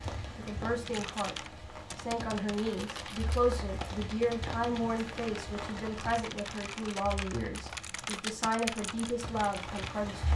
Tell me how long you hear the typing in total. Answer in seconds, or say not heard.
9 s.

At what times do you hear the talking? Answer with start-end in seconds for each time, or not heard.
0.3-10.3.